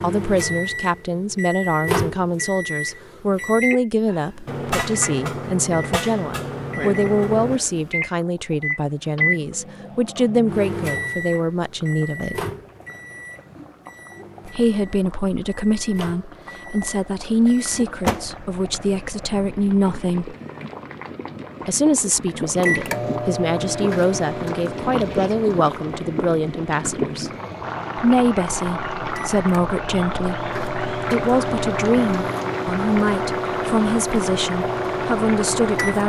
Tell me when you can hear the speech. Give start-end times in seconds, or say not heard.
0.0-12.4, 14.4-20.4, 21.6-27.3, 27.9-36.0.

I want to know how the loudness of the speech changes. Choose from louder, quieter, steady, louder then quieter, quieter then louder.
steady.